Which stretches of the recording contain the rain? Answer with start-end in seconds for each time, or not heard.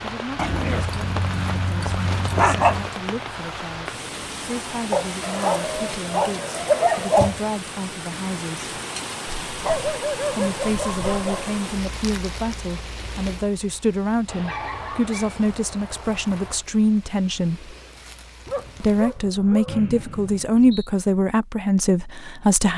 0.0-19.2.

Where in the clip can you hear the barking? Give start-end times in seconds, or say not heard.
0.3-2.9, 4.9-7.3, 9.5-11.5, 14.2-16.6, 18.4-19.8.